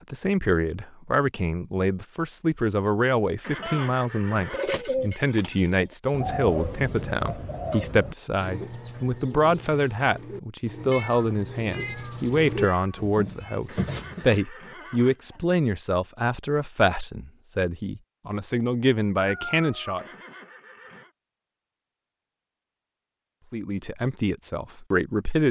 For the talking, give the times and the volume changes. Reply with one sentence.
You can hear the talking from 0.1 to 20.1 s, at a steady volume; and briefly from 23.5 to 25.4 s.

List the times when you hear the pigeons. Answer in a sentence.
The pigeons can be heard from 4.5 to 14.4 s.